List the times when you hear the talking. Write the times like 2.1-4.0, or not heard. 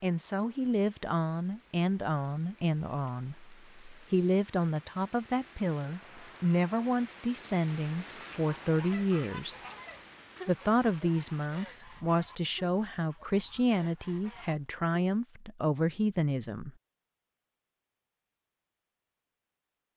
0.0-9.6, 10.4-16.7.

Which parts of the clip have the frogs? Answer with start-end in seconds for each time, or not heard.
not heard.